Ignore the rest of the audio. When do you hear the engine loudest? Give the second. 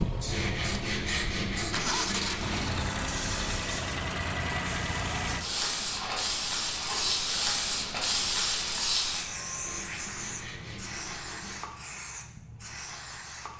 2 s.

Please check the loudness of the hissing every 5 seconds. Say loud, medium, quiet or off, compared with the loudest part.
medium, loud, medium.